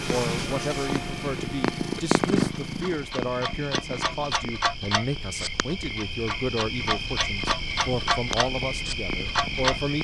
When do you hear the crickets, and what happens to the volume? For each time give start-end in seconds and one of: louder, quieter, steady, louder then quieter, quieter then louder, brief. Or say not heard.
0.0-9.9 louder.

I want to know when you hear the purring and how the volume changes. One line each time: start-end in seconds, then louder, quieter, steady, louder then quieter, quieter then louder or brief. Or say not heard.
0.0-9.9 quieter then louder.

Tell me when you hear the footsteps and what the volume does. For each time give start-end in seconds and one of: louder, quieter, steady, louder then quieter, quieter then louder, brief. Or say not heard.
not heard.